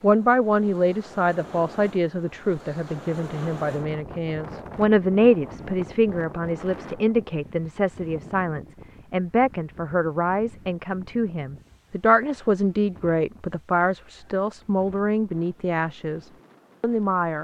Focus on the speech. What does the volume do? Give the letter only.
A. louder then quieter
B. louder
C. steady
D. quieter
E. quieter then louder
C.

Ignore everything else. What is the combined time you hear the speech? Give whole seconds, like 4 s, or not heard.
17 s.